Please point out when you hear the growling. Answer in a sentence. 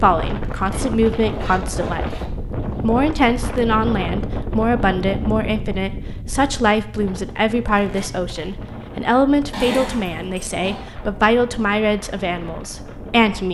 You can hear the growling from 9.5 to 10.8 s.